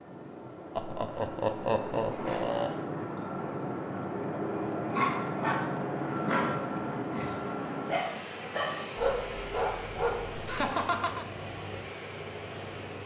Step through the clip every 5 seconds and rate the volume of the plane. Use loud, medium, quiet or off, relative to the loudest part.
loud, loud, medium.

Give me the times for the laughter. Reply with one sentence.
The laughter can be heard from 0.8 to 2.7 s and from 10.4 to 11.2 s.